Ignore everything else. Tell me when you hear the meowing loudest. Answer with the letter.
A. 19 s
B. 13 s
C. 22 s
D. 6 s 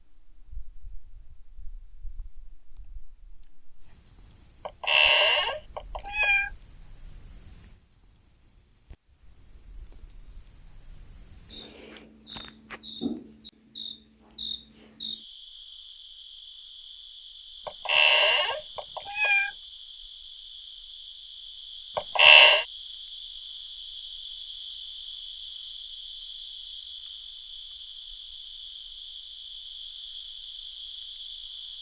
C.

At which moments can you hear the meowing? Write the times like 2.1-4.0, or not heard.
4.7-6.5, 17.6-19.5, 21.9-22.6.